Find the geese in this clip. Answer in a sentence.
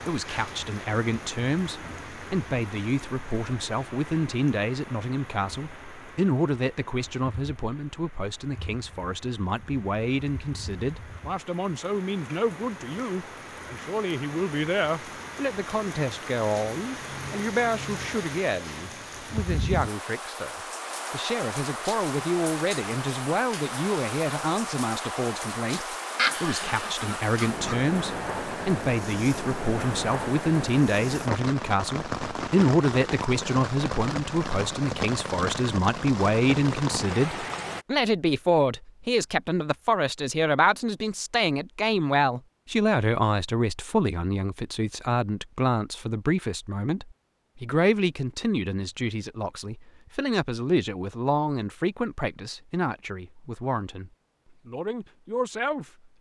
The geese can be heard from 26.1 to 27.8 s.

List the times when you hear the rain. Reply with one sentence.
You can hear the rain from 0.0 to 37.9 s.